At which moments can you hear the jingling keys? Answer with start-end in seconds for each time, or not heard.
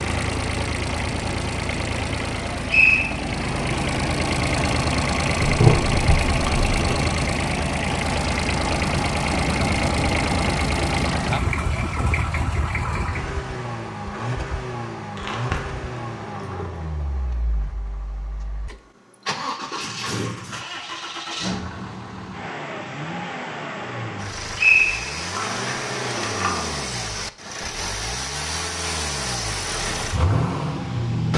5.4-6.7, 15.2-16.9, 25.3-26.9.